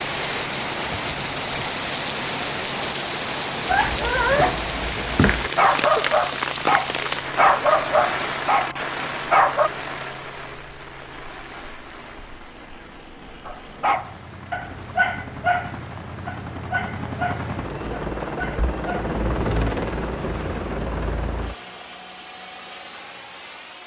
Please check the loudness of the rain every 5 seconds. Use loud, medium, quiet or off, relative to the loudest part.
loud, loud, quiet, quiet, quiet.